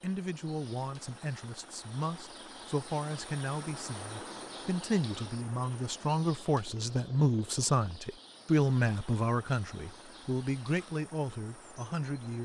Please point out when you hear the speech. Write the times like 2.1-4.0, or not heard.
0.0-12.4.